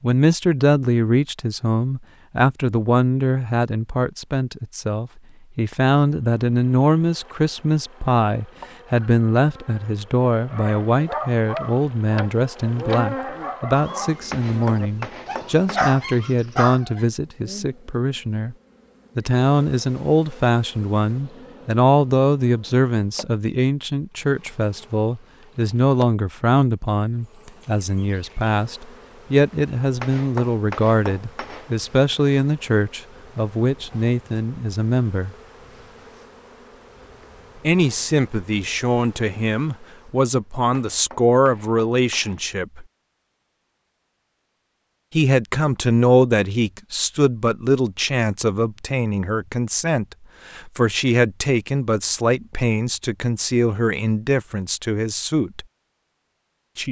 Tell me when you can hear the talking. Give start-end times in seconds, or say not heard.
0.0-18.6, 19.1-35.4, 37.6-42.9, 45.1-55.6.